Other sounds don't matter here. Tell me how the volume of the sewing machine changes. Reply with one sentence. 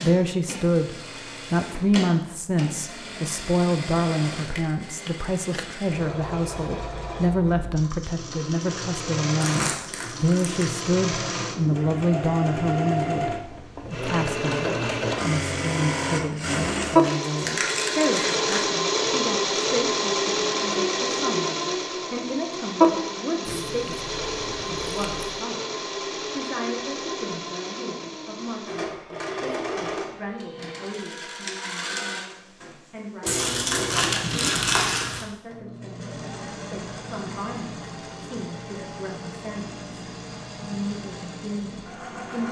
The loudness of the sewing machine goes up, then down.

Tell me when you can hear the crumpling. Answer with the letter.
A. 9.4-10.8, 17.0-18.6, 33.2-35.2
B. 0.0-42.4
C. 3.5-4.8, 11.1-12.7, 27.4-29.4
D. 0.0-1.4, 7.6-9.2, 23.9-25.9
A.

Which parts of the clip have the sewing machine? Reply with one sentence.
You can hear the sewing machine from 0.0 to 42.4 s.